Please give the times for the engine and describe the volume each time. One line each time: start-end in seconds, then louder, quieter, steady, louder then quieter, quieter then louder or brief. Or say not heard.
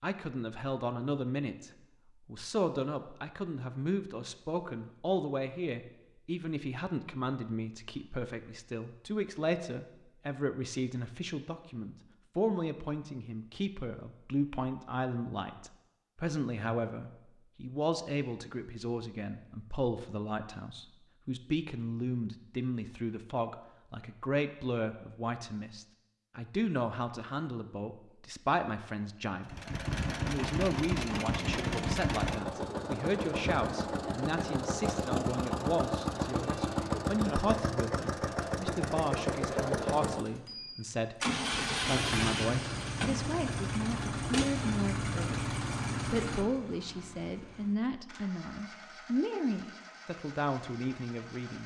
29.4-51.6 quieter.